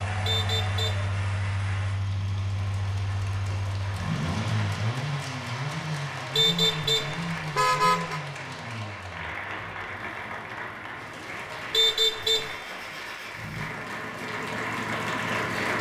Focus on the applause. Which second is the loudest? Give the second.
15 s.